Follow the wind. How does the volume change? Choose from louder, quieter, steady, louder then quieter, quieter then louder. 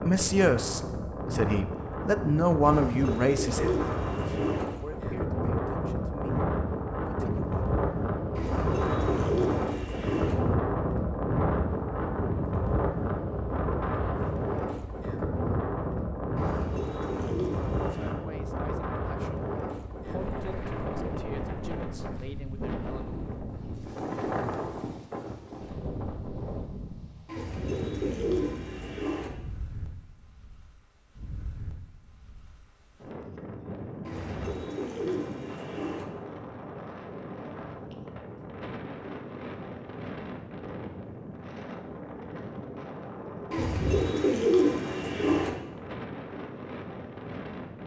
quieter.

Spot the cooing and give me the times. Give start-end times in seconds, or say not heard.
2.6-4.7, 8.3-10.3, 16.4-18.1, 27.2-29.3, 34.0-36.0, 43.5-45.5.